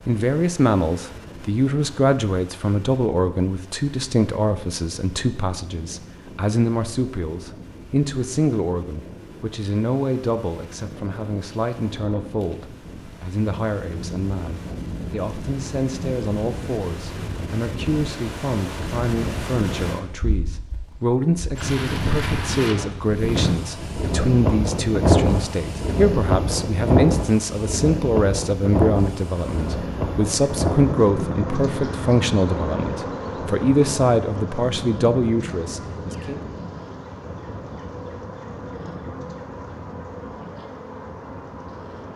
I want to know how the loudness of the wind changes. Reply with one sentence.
The volume of the wind goes up, then down.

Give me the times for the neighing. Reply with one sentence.
You can't hear the neighing here.